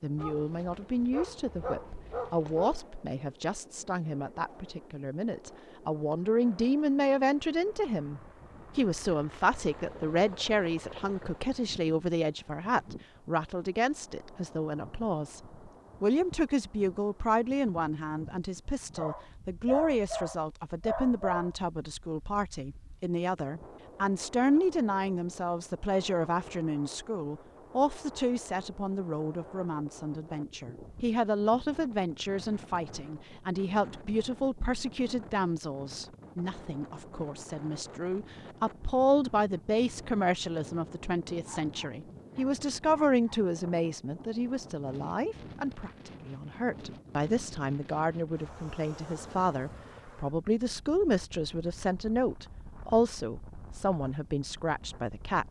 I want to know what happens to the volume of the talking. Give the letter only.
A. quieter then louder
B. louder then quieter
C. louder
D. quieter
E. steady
E.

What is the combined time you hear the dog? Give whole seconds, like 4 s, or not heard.
7 s.